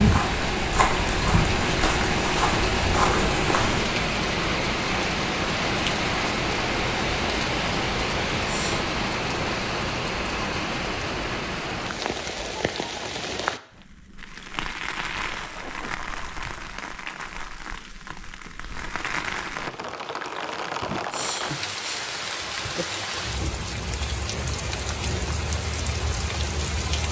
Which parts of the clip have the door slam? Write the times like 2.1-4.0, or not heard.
not heard.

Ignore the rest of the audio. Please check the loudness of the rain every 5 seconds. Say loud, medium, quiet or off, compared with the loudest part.
loud, loud, medium, medium, medium, medium.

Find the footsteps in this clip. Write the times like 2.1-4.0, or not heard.
0.0-3.8.